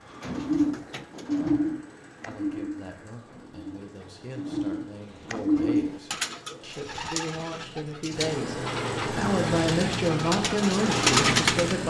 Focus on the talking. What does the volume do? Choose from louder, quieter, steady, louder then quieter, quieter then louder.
louder.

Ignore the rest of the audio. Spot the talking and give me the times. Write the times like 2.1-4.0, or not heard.
2.2-11.8.